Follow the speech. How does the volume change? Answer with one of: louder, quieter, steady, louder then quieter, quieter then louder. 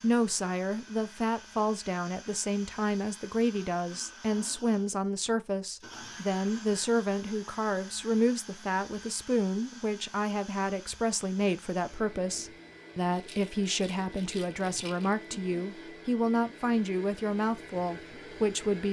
steady.